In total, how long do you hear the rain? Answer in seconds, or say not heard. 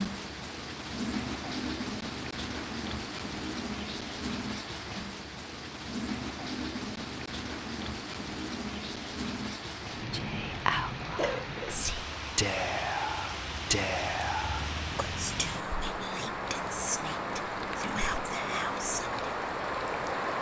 20 s.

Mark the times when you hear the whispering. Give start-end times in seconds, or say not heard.
10.1-19.3.